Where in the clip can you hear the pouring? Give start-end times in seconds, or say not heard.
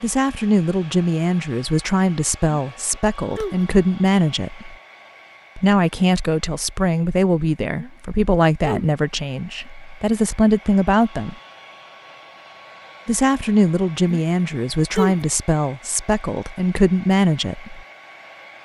not heard.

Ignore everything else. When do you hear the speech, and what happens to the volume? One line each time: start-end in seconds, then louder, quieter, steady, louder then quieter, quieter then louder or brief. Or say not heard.
0.0-4.8 quieter then louder
5.5-11.3 quieter then louder
13.1-17.8 quieter then louder.